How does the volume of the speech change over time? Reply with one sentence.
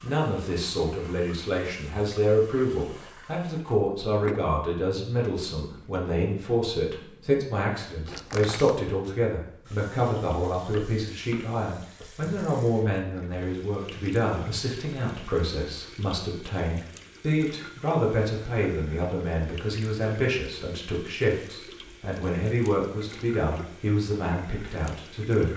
The loudness of the speech stays about the same.